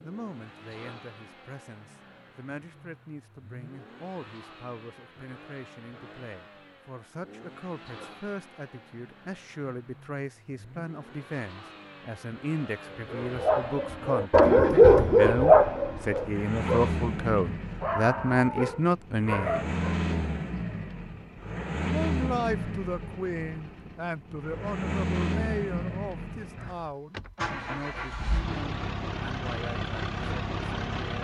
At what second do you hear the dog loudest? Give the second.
15 s.